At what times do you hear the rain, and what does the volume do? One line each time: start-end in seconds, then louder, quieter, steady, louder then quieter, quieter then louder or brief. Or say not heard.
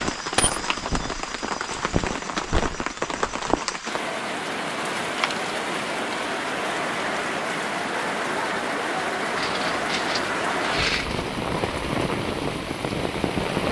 0.0-13.6 steady.